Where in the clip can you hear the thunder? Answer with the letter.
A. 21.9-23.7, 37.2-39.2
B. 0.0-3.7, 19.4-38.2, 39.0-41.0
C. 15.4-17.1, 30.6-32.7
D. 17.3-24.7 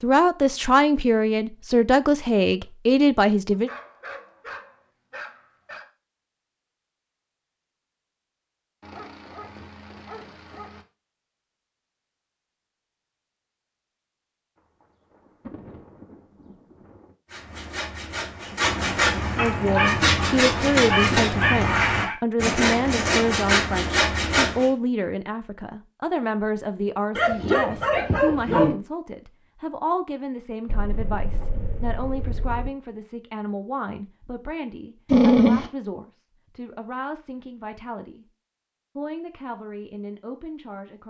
C.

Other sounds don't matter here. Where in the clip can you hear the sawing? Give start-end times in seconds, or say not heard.
17.3-24.7.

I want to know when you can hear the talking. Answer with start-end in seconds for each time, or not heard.
0.0-3.7, 19.4-38.2, 39.0-41.0.